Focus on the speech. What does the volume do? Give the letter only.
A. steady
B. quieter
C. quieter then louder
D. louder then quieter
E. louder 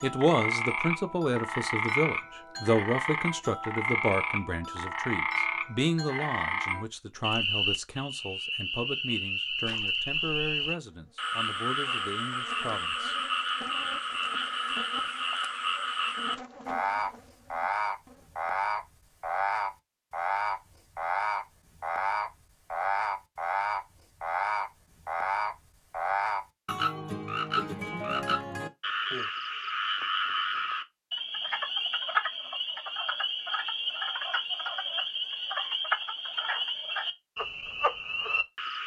B.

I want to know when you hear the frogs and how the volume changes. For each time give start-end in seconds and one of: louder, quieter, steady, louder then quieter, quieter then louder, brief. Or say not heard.
0.0-38.8 steady.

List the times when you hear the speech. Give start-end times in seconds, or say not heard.
0.0-13.2.